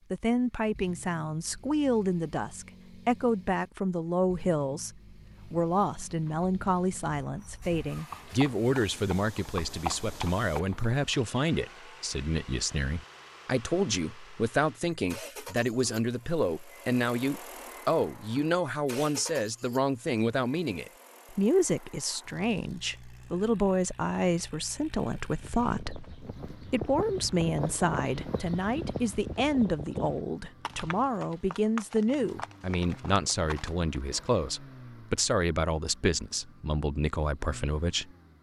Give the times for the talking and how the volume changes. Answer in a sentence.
The talking can be heard from 0.1 to 38.3 s, at a steady volume.